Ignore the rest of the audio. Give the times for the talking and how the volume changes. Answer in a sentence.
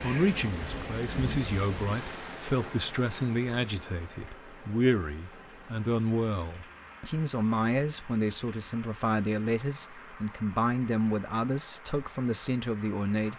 You can hear the talking from 0.0 to 13.3 s, at a steady volume.